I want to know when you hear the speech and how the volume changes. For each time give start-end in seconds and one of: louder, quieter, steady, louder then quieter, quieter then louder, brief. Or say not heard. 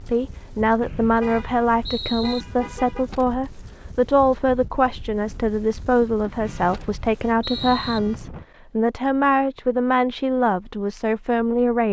0.0-11.8 steady.